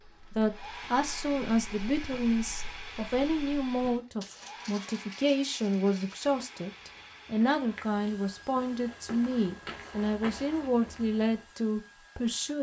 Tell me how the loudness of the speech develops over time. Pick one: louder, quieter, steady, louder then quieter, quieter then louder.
steady.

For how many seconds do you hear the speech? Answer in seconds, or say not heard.
12 s.